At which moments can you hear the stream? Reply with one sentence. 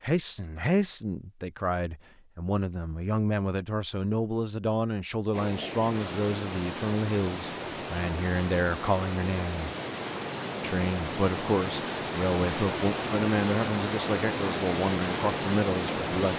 You can hear the stream from 5.3 to 16.3 s.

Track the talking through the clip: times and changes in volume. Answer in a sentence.
You can hear the talking from 0.0 to 9.7 s, at a steady volume; and from 10.6 to 16.3 s, at a steady volume.